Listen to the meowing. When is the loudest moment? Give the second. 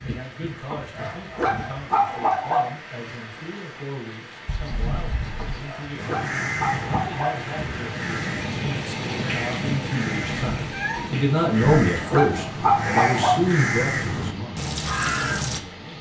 11 s.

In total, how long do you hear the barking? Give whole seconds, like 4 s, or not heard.
6 s.